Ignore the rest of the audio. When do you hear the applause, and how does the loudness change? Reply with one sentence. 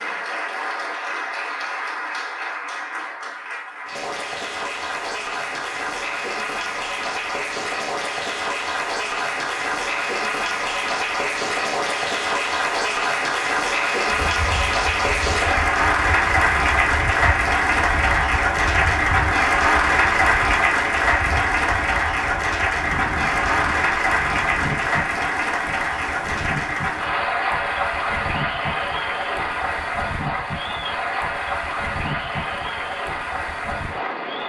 The applause can be heard from 0.0 to 34.4 s, getting louder then quieter.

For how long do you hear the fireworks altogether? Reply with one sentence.
The fireworks can't be heard in this clip.